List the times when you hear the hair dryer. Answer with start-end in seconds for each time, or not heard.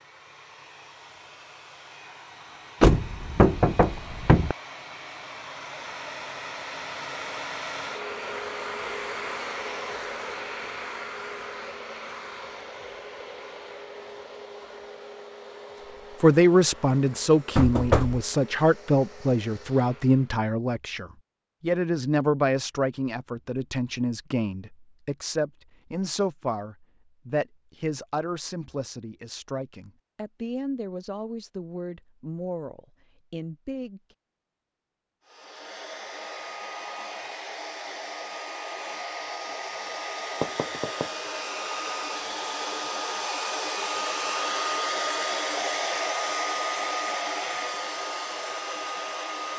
0.0-20.4, 35.2-49.5.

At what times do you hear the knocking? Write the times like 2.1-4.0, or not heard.
2.8-4.5, 17.6-18.2, 40.4-41.1.